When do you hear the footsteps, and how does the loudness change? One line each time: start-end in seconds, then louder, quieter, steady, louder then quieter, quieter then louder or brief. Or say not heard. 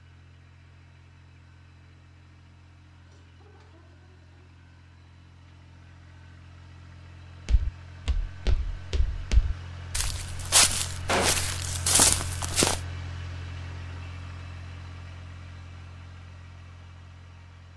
7.5-12.8 louder.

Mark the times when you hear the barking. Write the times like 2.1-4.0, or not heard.
not heard.